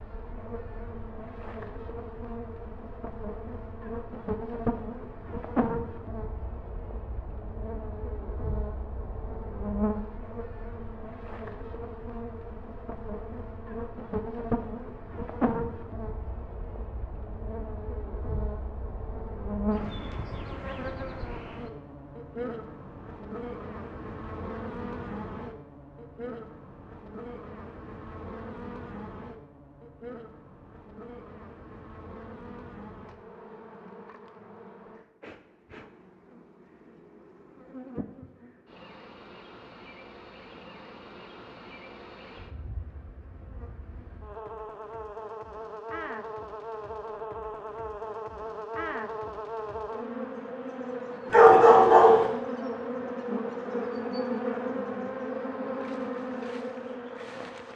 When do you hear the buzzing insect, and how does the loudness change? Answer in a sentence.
You can hear the buzzing insect from 0.0 to 57.7 s, getting quieter then louder.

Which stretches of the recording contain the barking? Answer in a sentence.
The barking can be heard from 51.3 to 52.2 s.